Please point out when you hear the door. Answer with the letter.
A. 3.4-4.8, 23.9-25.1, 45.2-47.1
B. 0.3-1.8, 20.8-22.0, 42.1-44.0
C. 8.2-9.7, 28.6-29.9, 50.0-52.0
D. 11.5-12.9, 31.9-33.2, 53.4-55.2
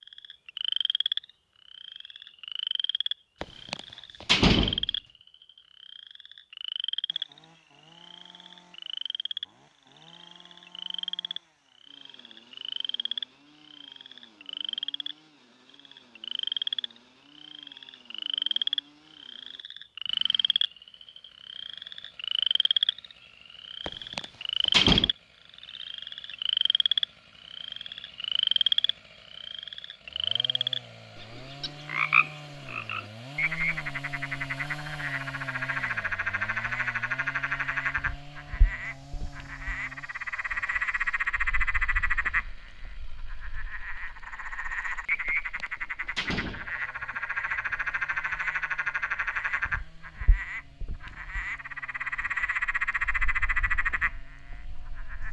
A.